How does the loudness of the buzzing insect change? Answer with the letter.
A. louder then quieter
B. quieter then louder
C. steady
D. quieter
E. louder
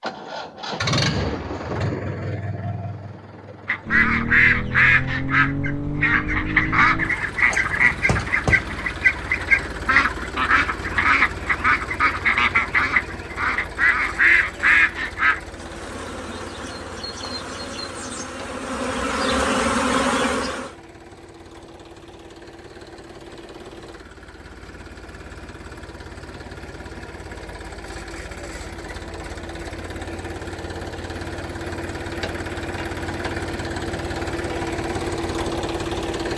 E.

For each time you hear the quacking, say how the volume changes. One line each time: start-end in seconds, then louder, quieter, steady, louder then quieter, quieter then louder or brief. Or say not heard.
3.6-15.4 steady.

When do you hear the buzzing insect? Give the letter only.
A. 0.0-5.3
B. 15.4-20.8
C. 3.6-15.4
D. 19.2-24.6
B.